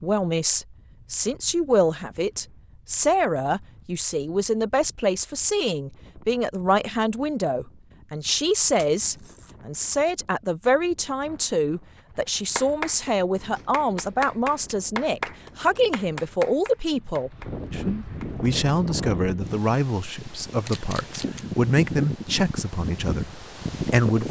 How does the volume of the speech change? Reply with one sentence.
The loudness of the speech stays about the same.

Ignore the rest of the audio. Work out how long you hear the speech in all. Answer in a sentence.
The speech can be heard for 24 seconds in total.